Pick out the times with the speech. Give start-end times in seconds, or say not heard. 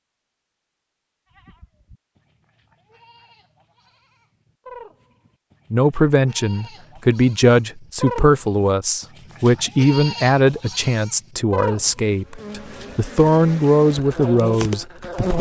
5.7-15.3.